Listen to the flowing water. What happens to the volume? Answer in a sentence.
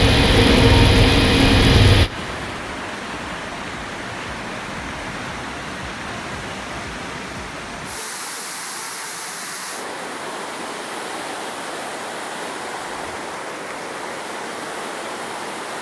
The volume of the flowing water stays about the same.